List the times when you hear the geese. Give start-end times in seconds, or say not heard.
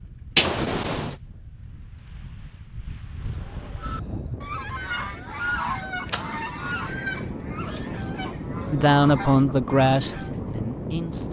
3.8-10.3.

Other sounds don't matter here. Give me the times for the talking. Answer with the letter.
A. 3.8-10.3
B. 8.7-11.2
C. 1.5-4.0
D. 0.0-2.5
B.